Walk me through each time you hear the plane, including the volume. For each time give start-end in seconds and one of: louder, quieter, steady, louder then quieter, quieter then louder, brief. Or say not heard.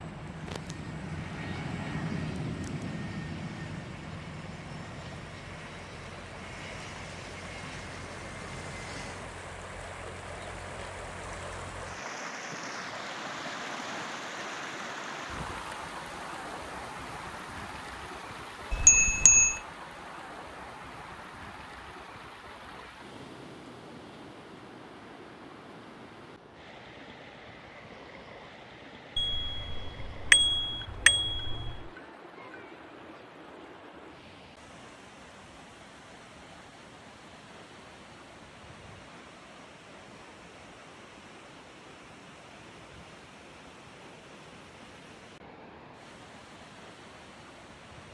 0.0-9.3 quieter.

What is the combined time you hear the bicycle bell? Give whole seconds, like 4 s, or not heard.
4 s.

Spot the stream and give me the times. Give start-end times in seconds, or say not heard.
0.0-48.0.